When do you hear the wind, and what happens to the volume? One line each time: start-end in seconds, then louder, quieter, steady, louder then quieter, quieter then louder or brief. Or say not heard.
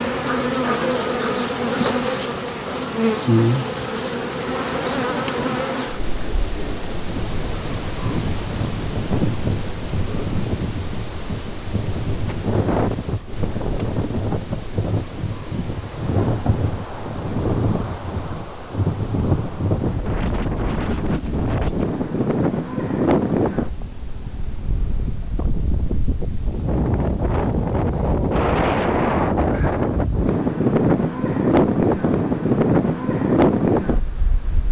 7.0-34.6 louder.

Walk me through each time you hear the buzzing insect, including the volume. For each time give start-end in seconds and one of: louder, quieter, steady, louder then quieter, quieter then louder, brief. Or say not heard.
0.0-34.6 quieter.